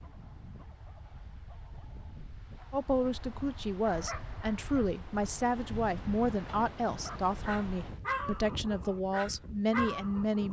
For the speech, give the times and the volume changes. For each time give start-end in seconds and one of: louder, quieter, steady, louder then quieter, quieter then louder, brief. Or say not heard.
2.7-10.4 steady.